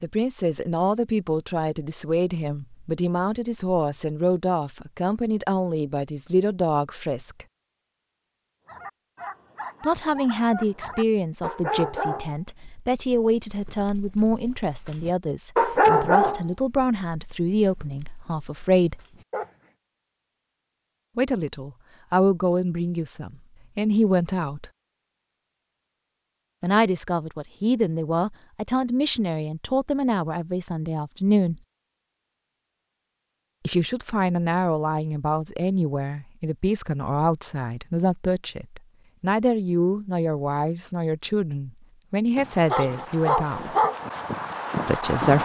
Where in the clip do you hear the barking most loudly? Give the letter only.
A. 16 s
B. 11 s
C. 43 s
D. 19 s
A.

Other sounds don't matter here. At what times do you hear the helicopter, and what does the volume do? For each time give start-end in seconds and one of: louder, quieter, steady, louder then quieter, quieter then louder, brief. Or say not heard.
not heard.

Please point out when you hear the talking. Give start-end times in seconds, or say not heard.
0.0-7.5, 9.8-19.0, 21.1-24.7, 26.6-31.6, 33.6-43.8, 44.9-45.4.